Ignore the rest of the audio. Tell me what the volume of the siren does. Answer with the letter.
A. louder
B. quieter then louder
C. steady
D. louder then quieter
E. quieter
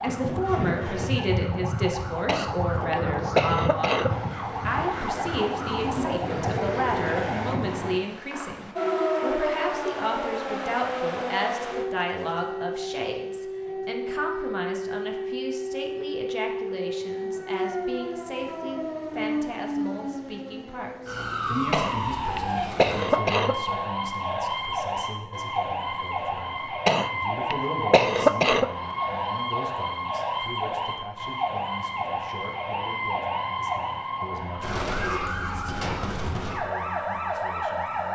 C.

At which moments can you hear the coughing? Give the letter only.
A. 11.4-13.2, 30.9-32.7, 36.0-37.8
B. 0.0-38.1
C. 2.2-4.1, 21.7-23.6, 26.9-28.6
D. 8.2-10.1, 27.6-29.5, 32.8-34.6
C.